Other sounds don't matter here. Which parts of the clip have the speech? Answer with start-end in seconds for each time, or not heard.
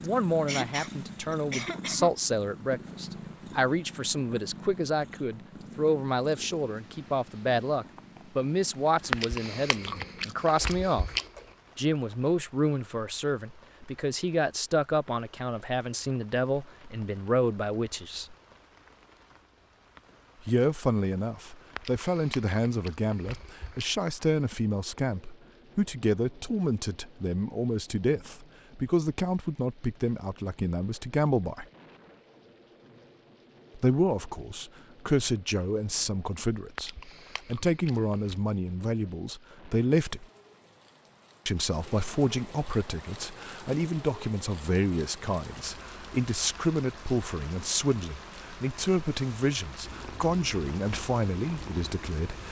0.0-11.1, 11.8-18.4, 20.4-31.6, 33.8-40.2, 41.5-52.4.